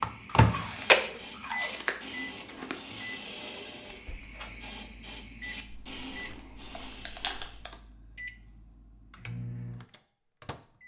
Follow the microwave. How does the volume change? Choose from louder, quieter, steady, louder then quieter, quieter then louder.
quieter then louder.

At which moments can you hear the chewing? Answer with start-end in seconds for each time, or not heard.
0.2-2.8, 5.7-7.8.